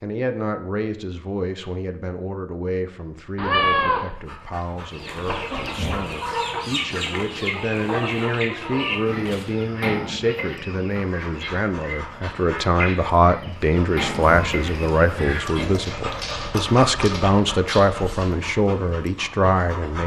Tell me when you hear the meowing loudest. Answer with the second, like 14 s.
4 s.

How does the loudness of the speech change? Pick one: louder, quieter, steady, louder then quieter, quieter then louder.
louder.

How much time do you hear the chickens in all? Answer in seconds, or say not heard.
11 s.